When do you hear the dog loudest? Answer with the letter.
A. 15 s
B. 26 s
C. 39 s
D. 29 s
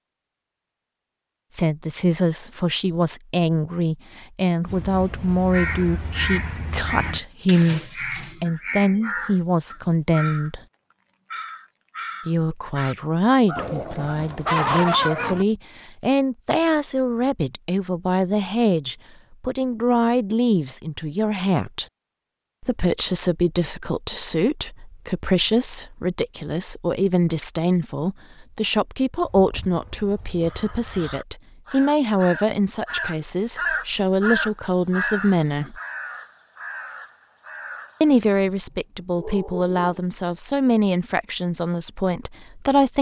A.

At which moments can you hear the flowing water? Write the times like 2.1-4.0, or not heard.
not heard.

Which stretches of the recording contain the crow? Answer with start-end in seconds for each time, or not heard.
4.7-10.5, 11.3-14.2, 29.4-38.2.